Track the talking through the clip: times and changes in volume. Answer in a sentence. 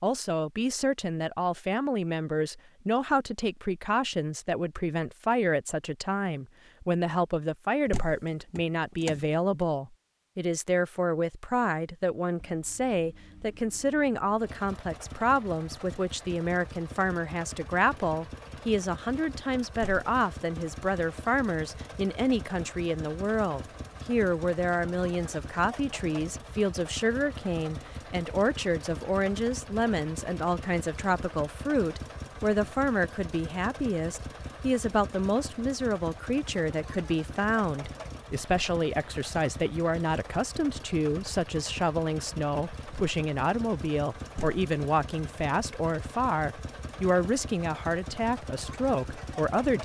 The talking can be heard from 0.0 to 49.8 s, at a steady volume.